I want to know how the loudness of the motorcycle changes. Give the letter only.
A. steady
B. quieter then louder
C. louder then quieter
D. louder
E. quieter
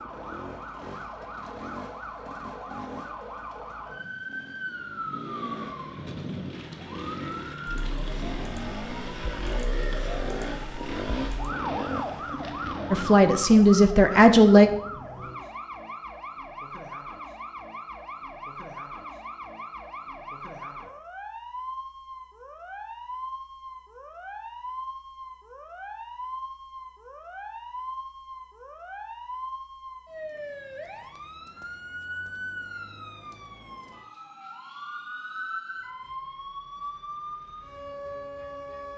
D.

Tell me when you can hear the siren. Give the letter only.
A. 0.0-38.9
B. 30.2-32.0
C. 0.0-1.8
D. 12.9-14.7
A.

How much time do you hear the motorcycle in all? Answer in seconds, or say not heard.
13 s.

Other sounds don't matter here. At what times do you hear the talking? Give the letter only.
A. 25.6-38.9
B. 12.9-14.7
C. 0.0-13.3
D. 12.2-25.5
B.